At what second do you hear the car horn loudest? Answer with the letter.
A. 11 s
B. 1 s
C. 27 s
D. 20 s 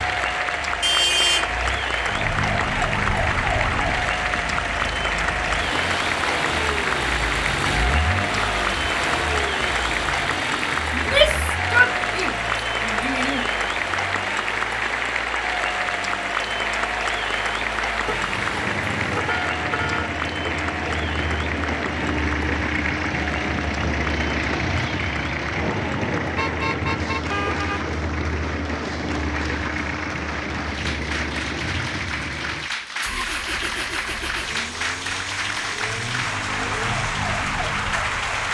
B.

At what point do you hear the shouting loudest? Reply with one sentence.
The volume of the shouting peaks at 11 seconds.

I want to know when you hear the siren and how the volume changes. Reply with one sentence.
The siren can be heard briefly from 2.0 to 4.2 s; and from 33.5 to 38.5 s, getting louder.